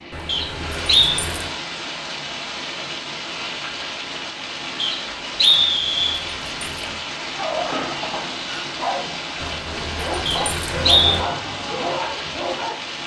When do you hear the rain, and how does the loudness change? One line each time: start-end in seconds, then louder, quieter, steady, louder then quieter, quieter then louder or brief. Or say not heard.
0.0-13.0 steady.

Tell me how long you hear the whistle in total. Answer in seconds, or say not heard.
3 s.